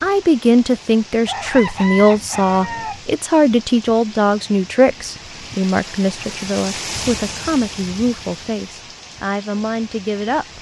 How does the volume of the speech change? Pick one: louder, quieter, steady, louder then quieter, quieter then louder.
quieter.